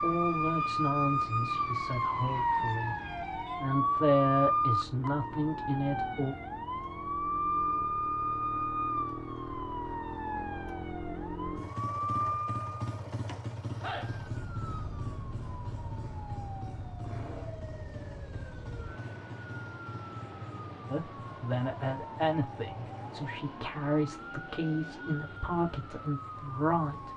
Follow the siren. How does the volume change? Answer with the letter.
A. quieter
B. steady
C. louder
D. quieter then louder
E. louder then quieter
A.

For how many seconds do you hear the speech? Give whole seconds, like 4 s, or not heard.
12 s.